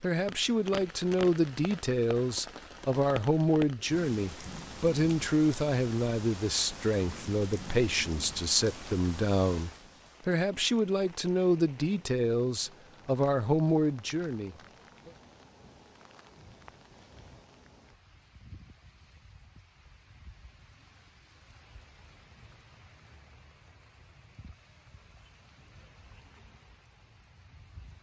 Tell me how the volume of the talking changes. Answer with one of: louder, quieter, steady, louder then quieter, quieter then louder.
steady.